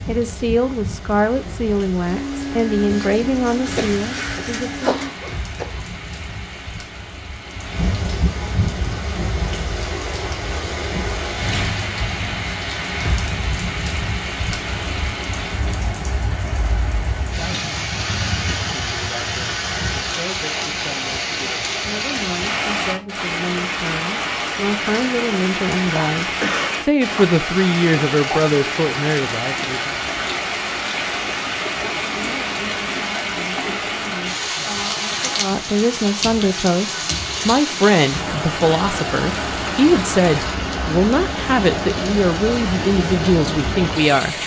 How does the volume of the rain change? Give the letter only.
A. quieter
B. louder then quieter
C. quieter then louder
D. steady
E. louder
E.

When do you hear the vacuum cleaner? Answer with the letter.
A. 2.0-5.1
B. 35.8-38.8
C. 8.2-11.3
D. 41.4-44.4
A.